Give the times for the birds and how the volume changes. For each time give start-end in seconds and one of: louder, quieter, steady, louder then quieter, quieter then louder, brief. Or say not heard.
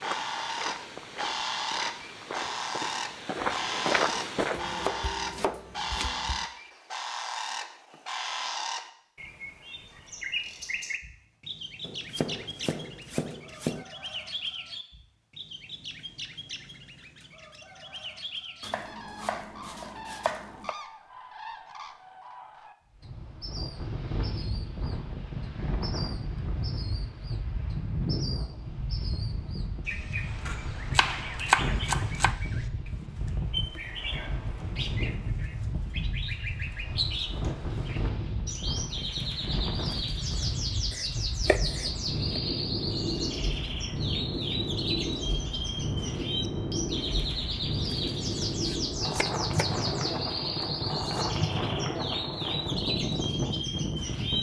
0.0-54.3 quieter then louder.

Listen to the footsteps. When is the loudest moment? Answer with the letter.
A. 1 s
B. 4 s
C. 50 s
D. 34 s
B.